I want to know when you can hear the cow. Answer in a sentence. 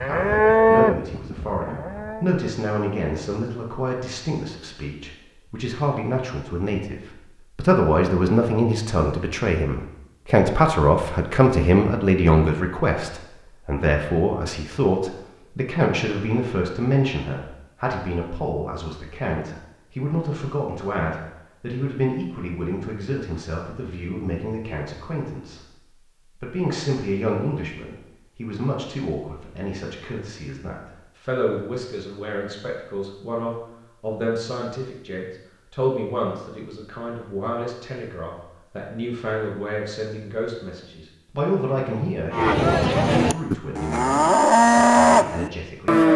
The cow can be heard from 0.0 to 2.3 s and from 42.3 to 46.1 s.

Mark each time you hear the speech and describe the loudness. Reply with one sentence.
The speech can be heard from 0.0 to 25.6 s, getting louder then quieter; and from 26.4 to 46.0 s, at a steady volume.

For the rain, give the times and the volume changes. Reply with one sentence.
You can't hear the rain here.